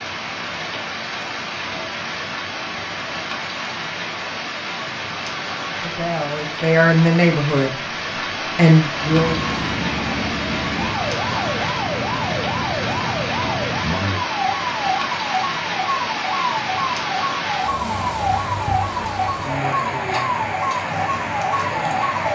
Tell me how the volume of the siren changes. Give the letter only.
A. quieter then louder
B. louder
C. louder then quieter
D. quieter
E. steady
E.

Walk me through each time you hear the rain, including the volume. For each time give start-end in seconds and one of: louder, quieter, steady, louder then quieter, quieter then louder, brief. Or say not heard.
0.0-22.3 steady.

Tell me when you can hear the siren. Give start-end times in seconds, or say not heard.
8.9-22.3.